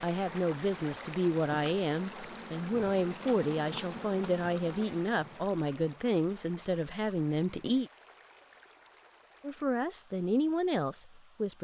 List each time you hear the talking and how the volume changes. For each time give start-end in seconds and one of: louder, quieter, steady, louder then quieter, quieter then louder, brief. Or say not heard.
0.0-7.9 steady
9.4-11.5 brief.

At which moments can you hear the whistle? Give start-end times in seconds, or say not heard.
not heard.